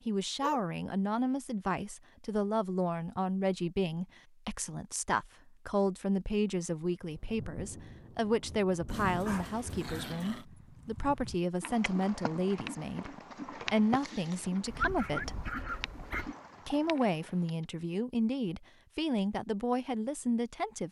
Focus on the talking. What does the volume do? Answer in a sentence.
The volume of the talking stays about the same.